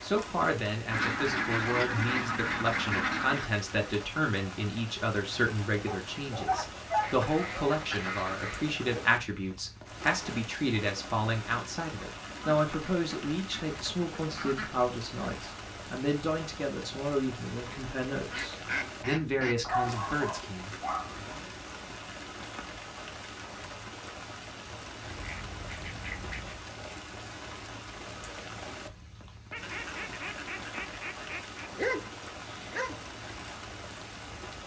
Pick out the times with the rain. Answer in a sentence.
You can hear the rain from 0.0 to 34.6 s.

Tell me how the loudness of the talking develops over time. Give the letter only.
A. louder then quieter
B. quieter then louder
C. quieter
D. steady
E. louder
D.